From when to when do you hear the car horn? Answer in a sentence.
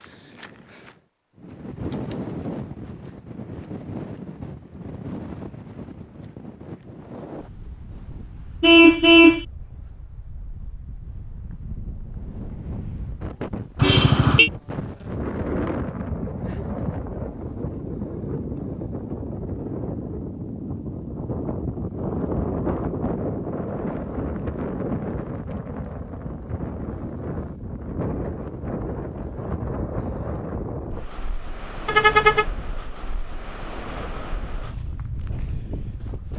You can hear the car horn from 8.6 to 9.4 s, from 13.8 to 14.5 s and from 31.9 to 32.5 s.